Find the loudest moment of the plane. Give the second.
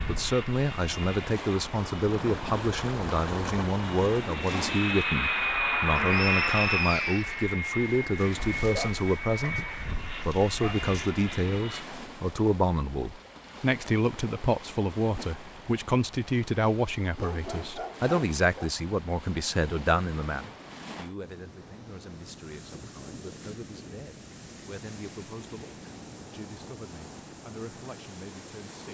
6 s.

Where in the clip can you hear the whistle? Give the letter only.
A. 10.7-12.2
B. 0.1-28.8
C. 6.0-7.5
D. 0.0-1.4
C.